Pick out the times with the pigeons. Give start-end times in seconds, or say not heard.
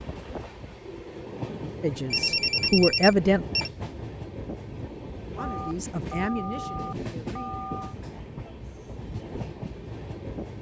not heard.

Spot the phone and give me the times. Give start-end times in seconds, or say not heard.
2.1-3.7, 5.3-8.0.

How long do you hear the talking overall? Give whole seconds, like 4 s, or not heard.
4 s.